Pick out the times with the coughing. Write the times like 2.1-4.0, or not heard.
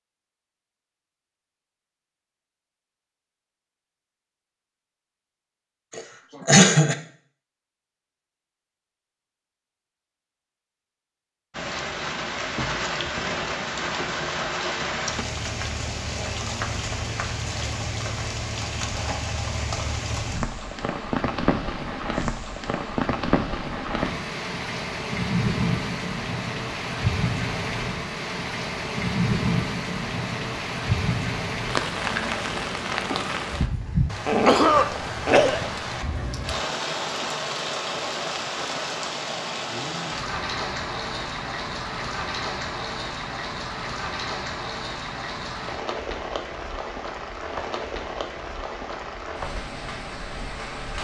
6.0-7.0, 34.2-35.6.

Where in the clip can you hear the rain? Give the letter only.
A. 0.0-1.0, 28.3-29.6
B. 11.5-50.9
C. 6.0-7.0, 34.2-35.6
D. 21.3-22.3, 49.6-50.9
B.